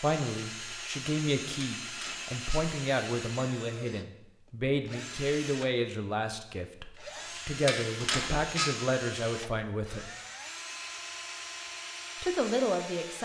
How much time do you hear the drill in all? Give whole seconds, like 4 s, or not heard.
12 s.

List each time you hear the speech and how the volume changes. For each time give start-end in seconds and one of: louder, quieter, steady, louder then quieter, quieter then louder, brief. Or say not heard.
0.0-10.1 steady
12.2-13.2 brief.